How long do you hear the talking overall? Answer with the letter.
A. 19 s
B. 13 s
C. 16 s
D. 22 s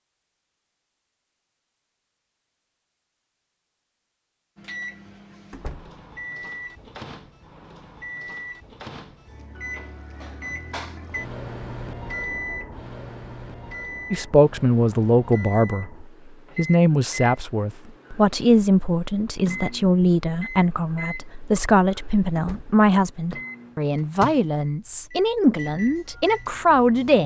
B.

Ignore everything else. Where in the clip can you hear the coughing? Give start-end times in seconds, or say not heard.
not heard.